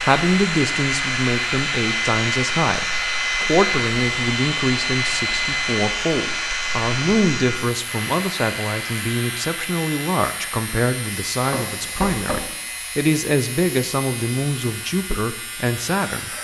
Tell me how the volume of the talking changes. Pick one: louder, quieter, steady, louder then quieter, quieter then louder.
steady.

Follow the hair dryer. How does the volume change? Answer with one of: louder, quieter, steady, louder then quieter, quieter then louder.
quieter.